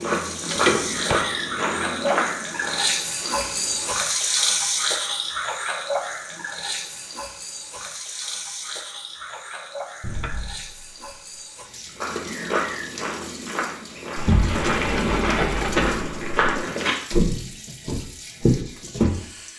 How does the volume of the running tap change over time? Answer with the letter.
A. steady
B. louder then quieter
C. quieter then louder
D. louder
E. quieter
E.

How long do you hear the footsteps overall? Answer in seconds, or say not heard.
11 s.